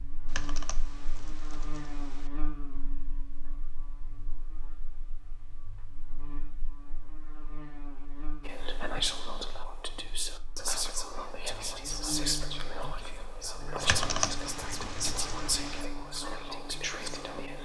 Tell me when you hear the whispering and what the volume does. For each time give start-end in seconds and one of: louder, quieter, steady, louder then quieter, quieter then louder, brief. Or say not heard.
8.4-17.6 steady.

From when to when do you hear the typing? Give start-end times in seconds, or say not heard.
0.2-2.3, 13.8-15.8.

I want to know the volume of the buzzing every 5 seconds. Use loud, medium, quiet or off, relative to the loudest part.
loud, medium, loud, loud.